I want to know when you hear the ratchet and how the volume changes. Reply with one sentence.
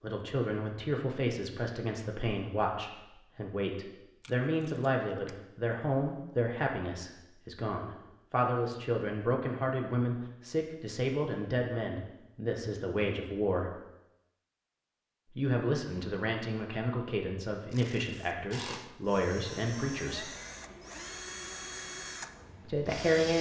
You can't hear the ratchet here.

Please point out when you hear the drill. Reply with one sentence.
You can hear the drill from 18.5 to 23.3 s.